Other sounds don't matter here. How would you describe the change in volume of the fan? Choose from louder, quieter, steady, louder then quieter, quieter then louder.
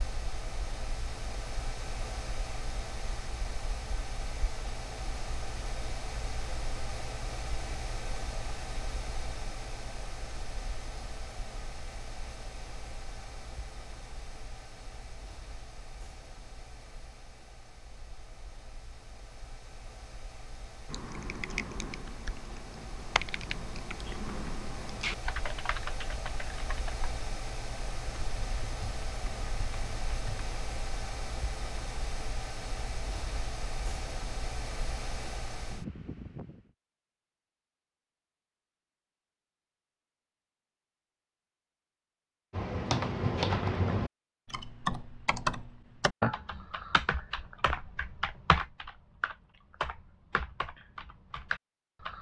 quieter then louder.